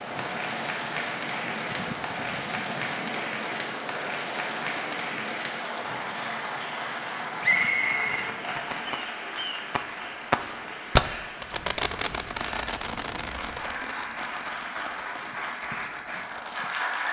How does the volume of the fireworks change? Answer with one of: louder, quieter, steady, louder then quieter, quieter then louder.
louder then quieter.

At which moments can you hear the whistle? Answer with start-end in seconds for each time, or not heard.
7.4-8.2.